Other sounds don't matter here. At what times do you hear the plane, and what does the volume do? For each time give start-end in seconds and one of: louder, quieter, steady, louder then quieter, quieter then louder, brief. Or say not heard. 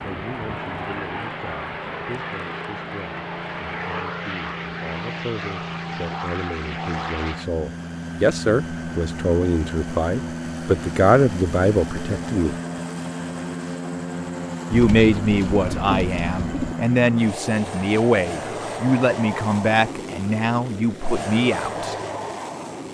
0.0-22.8 steady.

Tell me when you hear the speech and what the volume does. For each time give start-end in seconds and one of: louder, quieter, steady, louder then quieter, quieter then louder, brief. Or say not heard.
0.0-12.6 louder
14.7-21.9 steady.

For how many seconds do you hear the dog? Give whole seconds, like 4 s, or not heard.
not heard.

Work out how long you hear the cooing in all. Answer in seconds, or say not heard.
2 s.